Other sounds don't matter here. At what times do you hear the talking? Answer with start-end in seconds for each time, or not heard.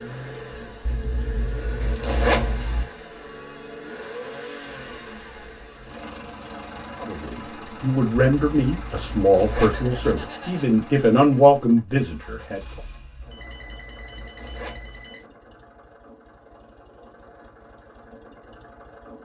7.0-12.6.